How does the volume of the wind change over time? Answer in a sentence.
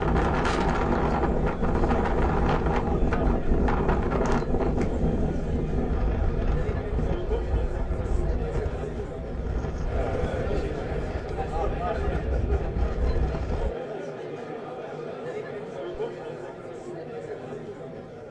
The volume of the wind goes down.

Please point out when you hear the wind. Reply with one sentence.
The wind can be heard from 0.0 to 13.7 s.